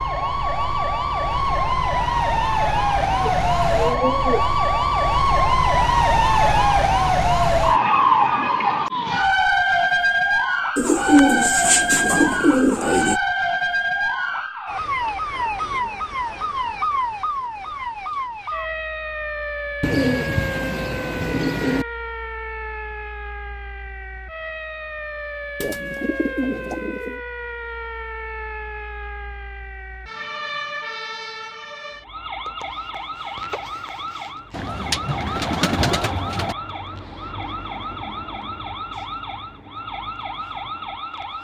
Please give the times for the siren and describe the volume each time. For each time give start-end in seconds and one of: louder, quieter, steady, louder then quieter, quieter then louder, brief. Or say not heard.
0.0-41.3 quieter.